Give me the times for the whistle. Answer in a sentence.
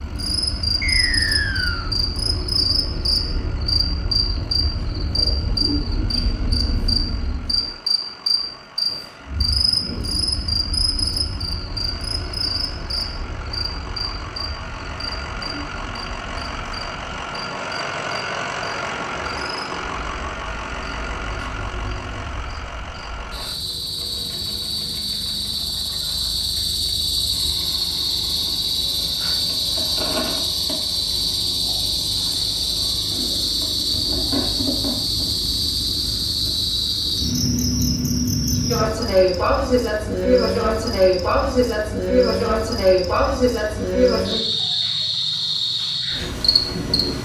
The whistle can be heard from 0.8 to 1.9 s.